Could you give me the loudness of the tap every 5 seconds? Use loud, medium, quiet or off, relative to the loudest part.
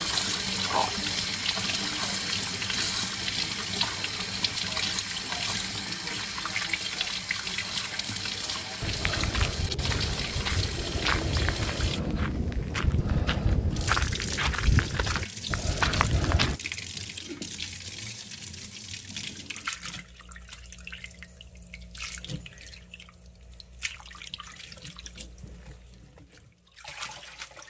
loud, loud, medium, medium, quiet, quiet.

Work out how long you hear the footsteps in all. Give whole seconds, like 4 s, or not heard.
8 s.